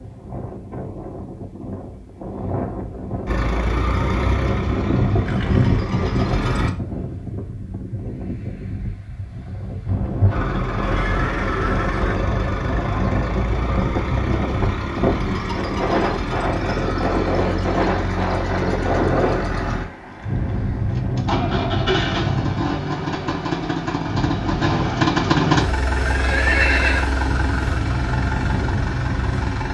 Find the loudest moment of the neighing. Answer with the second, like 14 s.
27 s.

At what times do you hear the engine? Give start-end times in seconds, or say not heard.
3.2-6.7, 10.3-29.6.